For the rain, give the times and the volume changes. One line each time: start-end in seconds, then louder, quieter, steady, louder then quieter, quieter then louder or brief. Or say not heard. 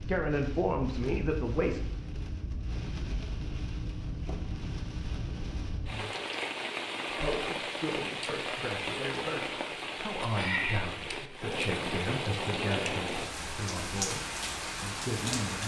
0.0-15.6 louder.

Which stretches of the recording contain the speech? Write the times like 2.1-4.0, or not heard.
0.0-1.9, 7.0-15.6.